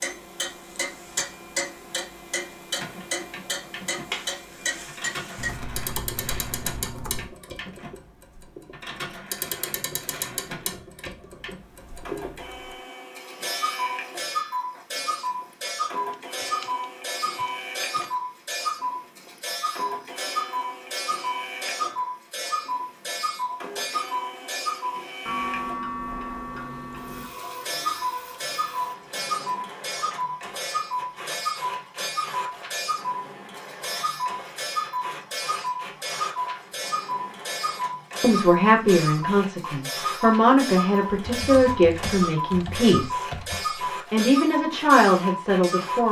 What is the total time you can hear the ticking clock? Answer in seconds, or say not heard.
46 s.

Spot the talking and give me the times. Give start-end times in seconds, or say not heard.
38.2-46.0.